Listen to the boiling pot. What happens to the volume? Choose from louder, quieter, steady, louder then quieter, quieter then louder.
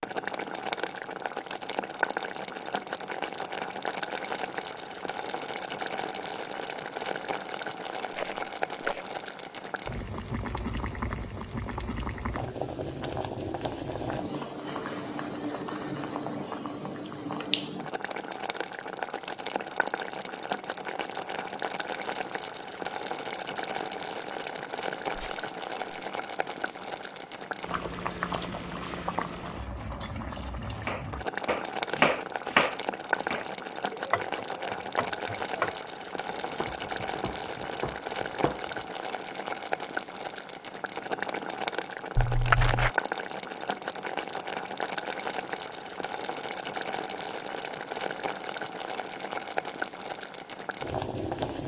steady.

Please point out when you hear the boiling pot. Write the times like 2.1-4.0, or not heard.
0.0-51.6.